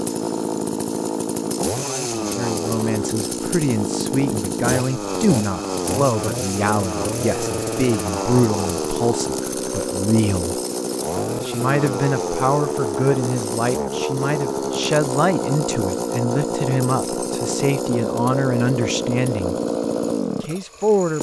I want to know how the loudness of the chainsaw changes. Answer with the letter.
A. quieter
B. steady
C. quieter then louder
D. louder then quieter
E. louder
B.